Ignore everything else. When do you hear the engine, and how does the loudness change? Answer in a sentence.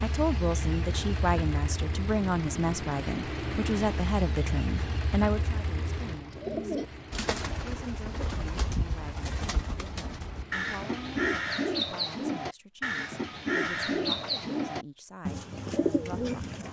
You can hear the engine from 0.0 to 11.3 s, getting quieter.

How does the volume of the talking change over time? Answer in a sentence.
The loudness of the talking goes down.